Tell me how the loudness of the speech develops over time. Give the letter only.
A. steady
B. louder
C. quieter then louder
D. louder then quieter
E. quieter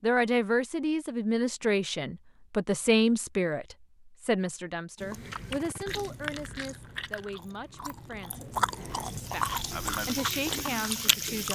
C.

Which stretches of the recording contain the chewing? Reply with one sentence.
The chewing can be heard from 5.0 to 11.5 s.